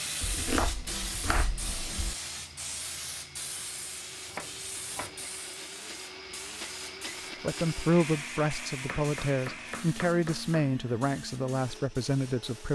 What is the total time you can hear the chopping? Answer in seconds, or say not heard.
5 s.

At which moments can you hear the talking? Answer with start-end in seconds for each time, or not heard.
7.4-12.6.